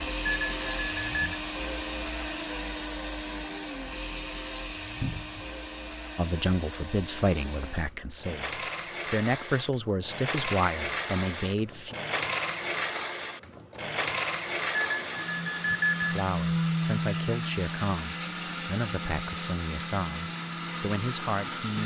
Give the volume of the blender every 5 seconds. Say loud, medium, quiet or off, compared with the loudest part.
loud, medium, loud, loud, loud.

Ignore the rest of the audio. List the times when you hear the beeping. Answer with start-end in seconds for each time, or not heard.
0.2-1.4, 14.7-16.2.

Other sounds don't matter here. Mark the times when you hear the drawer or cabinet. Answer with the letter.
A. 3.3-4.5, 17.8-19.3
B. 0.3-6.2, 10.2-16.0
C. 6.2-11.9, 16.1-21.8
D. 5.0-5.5
D.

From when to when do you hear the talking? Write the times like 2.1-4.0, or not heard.
6.2-11.9, 16.1-21.8.